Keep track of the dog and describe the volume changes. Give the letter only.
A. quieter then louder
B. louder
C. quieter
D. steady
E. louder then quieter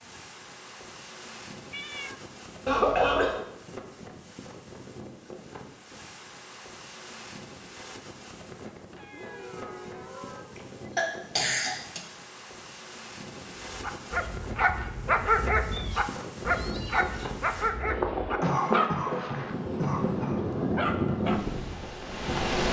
C.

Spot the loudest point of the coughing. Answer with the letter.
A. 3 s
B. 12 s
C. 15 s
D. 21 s
A.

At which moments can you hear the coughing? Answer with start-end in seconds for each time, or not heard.
2.6-3.4, 10.6-12.0, 18.4-20.4.